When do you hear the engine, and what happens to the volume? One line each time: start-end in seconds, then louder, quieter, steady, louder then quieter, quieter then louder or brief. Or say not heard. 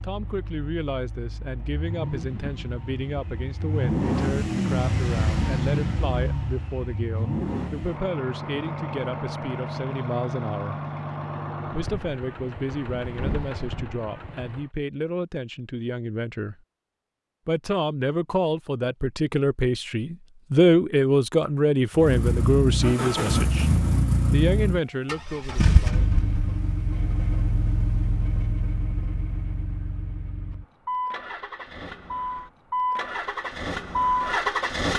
0.0-14.7 louder then quieter
21.9-34.9 quieter then louder.